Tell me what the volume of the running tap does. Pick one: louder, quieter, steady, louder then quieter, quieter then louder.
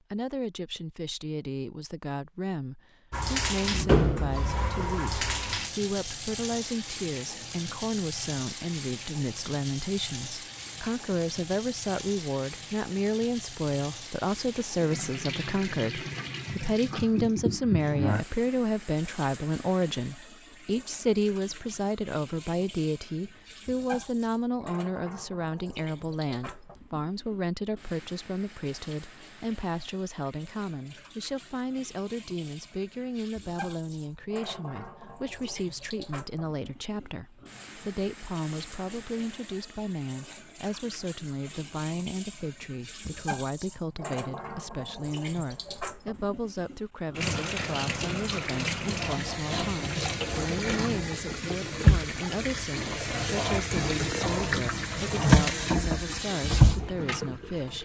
quieter then louder.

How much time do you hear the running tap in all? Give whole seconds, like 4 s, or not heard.
55 s.